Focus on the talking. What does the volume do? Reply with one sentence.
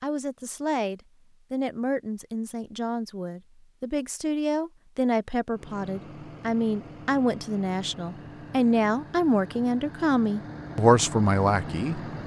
The volume of the talking goes up.